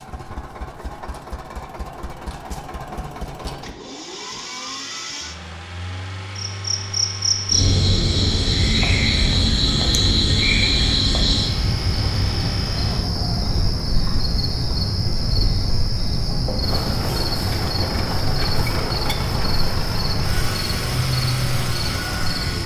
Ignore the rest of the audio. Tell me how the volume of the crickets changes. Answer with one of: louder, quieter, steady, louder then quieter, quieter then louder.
quieter.